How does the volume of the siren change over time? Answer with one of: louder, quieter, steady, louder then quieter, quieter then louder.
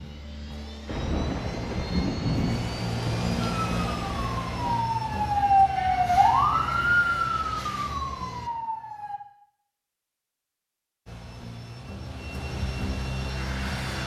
louder then quieter.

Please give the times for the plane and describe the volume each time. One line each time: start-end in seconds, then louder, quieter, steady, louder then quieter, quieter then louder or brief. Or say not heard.
0.0-8.5 louder then quieter
11.1-14.0 brief.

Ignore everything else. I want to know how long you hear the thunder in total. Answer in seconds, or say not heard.
4 s.